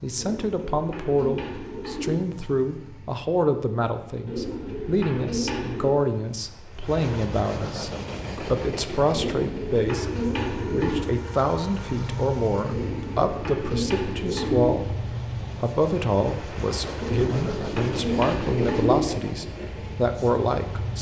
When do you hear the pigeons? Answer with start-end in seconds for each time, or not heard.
0.1-2.1, 4.2-6.0, 9.1-11.1, 12.7-14.7, 17.0-18.9.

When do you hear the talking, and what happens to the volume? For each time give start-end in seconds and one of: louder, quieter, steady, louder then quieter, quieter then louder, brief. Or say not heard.
0.0-20.9 steady.